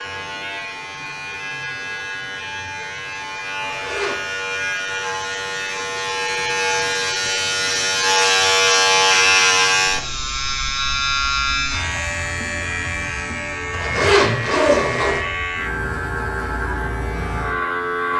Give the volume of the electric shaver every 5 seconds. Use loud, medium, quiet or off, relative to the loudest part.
medium, loud, medium, medium.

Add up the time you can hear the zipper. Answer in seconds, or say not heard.
2 s.